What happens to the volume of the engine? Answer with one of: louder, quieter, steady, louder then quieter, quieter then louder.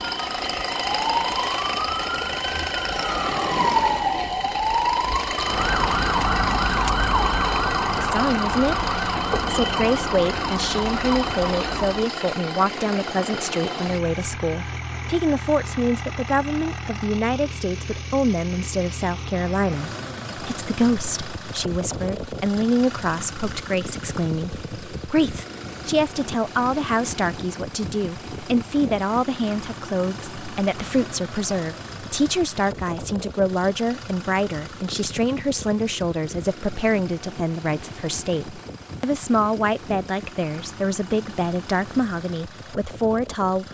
quieter.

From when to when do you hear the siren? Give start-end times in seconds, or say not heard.
0.0-12.1.